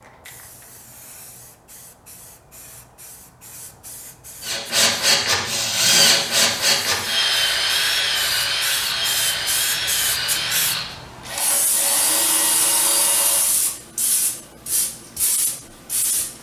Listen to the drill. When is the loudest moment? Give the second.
6 s.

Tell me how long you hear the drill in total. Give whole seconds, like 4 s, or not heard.
9 s.